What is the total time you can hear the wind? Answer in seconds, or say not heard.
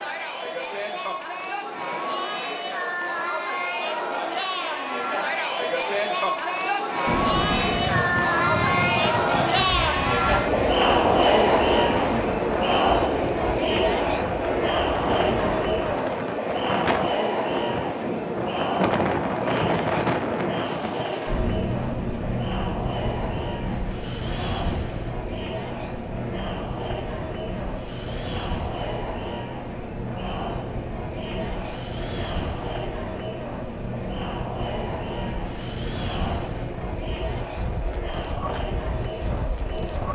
33 s.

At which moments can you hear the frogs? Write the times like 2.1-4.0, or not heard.
not heard.